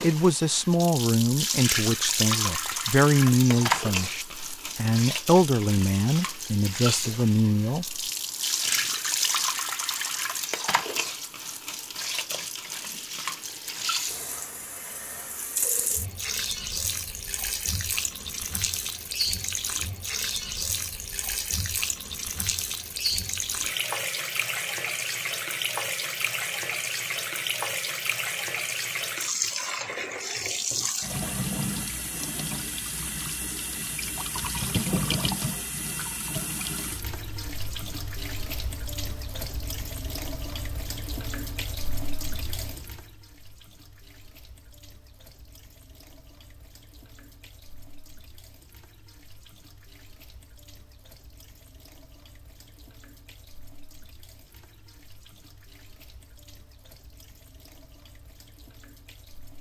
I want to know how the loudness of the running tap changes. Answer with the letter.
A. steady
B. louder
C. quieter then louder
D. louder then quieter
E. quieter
E.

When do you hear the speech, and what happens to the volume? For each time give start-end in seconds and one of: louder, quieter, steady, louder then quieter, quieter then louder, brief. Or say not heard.
0.0-8.1 steady.